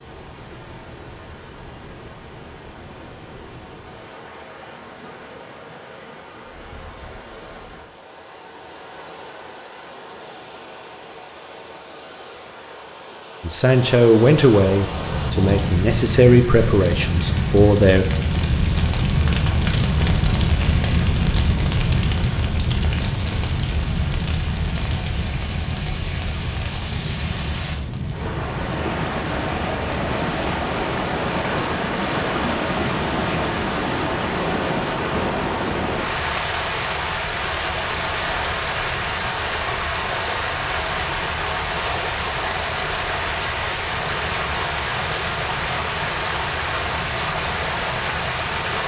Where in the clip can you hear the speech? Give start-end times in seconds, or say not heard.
13.4-18.1.